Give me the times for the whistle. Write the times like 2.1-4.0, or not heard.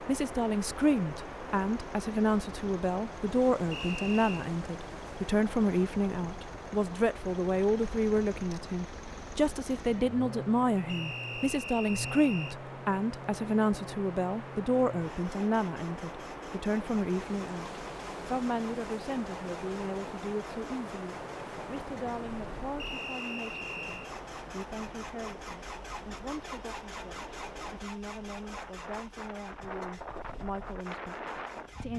3.7-4.5, 10.8-12.6, 22.8-24.1.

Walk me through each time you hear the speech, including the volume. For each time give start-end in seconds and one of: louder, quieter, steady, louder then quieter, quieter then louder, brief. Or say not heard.
0.0-31.9 quieter.